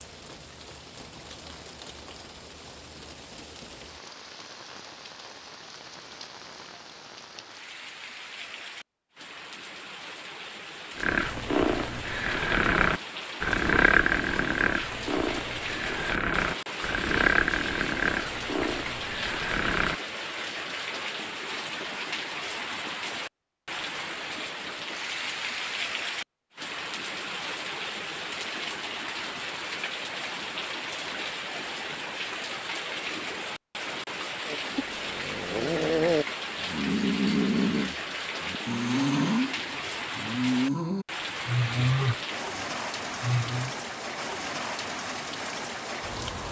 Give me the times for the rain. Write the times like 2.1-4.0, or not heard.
0.0-46.4.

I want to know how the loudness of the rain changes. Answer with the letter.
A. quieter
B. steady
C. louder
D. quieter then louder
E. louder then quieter
C.